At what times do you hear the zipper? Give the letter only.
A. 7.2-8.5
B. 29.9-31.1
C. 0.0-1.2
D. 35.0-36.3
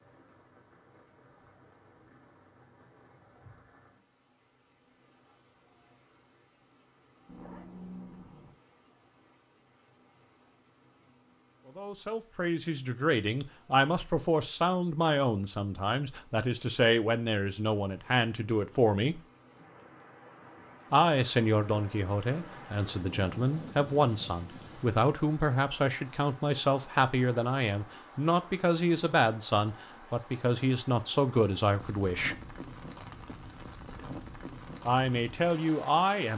A.